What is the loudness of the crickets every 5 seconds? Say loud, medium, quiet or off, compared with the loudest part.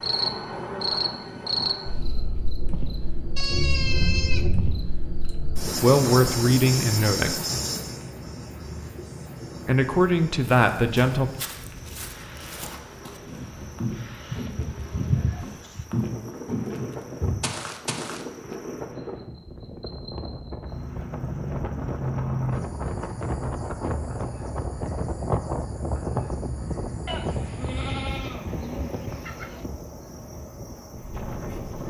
loud, loud, quiet, quiet, loud, medium, medium.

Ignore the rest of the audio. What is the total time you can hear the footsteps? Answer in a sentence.
The footsteps can be heard for 8 seconds in total.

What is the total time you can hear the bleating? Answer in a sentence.
You can hear the bleating for 6 seconds altogether.